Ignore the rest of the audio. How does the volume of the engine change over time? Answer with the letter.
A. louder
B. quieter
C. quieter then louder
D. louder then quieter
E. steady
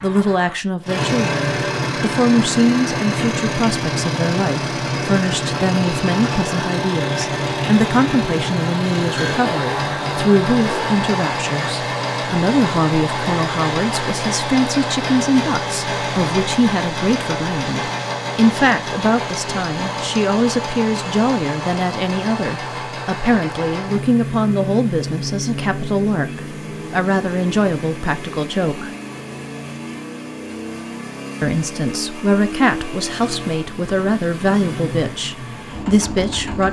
B.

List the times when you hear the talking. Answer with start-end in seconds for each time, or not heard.
0.0-28.9, 31.4-36.6.